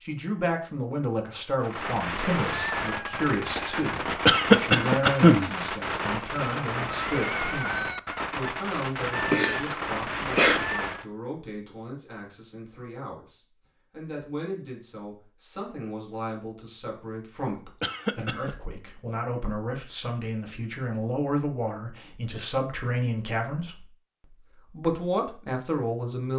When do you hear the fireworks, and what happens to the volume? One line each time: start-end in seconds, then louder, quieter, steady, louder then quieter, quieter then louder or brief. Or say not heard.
1.6-11.1 steady.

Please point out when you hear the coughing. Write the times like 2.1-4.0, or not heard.
4.2-5.5, 9.2-10.6, 17.8-18.6.